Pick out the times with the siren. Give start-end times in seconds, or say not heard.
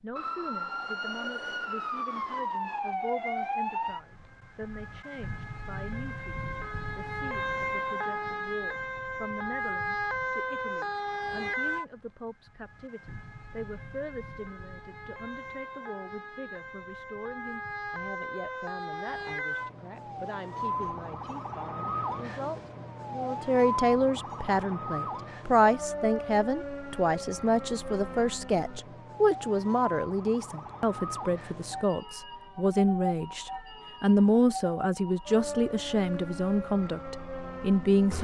0.1-38.1.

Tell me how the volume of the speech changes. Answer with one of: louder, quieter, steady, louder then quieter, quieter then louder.
louder.